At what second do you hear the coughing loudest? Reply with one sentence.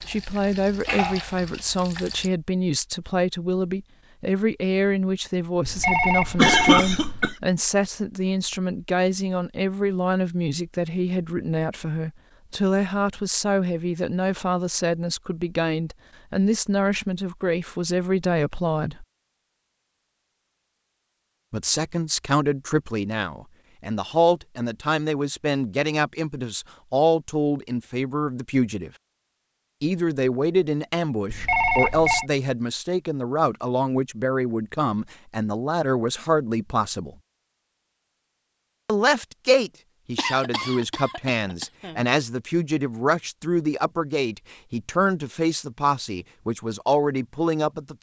The volume of the coughing peaks at 7 seconds.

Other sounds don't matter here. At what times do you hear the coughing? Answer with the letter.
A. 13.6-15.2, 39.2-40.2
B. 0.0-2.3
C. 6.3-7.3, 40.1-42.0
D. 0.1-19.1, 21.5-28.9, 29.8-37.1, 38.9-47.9
C.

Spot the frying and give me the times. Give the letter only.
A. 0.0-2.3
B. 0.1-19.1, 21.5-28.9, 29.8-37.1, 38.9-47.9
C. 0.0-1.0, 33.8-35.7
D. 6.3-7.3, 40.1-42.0
A.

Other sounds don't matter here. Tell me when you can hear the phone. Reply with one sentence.
The phone can be heard from 5.7 to 7.3 s and from 31.3 to 32.2 s.